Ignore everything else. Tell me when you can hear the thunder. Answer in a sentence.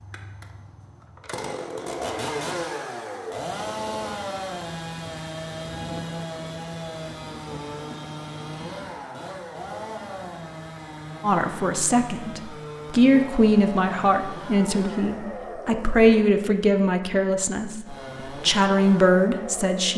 You can hear the thunder from 5.0 to 8.9 s.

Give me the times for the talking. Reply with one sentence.
You can hear the talking from 11.2 to 19.9 s.